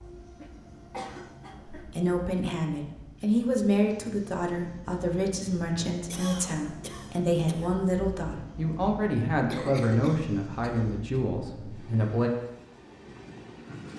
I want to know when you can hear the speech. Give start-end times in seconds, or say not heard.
1.7-12.3.